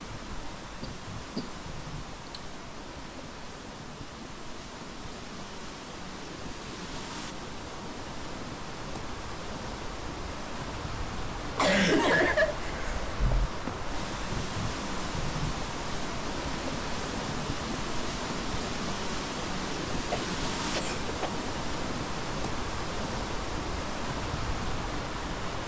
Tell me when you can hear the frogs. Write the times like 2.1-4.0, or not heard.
not heard.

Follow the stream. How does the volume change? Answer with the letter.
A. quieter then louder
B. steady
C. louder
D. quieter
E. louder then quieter
C.